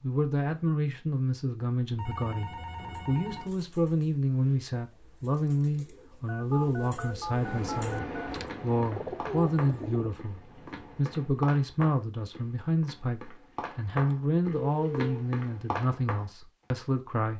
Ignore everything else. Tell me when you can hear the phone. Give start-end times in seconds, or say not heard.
1.9-3.5, 6.2-8.3, 14.1-15.2.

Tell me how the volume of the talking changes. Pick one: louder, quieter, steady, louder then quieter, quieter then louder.
steady.